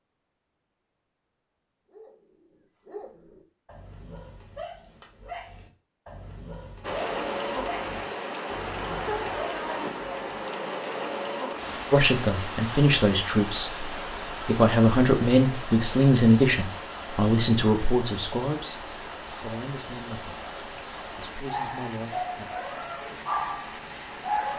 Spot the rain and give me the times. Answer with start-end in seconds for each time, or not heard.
6.8-24.5.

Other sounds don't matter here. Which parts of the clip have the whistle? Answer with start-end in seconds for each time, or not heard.
not heard.